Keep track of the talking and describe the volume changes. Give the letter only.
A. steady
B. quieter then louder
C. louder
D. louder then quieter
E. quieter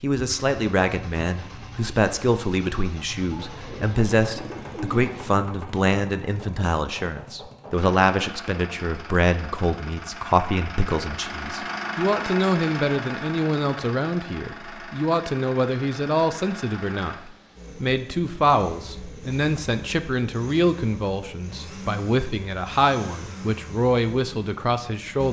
A.